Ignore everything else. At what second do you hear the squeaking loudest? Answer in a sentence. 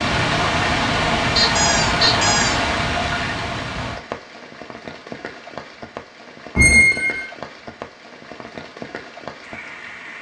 The loudest moment of the squeaking is at 7 seconds.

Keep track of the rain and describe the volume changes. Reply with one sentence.
The loudness of the rain goes down.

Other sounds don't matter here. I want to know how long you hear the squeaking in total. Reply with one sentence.
You can hear the squeaking for 2 seconds altogether.